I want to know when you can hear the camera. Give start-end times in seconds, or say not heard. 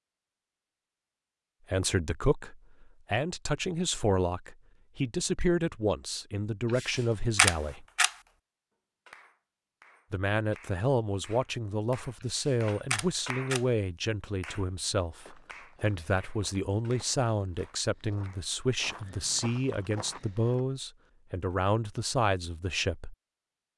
6.8-8.1, 12.3-13.7.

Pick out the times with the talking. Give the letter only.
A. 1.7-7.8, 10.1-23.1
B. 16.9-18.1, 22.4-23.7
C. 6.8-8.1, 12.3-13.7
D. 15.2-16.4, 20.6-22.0
A.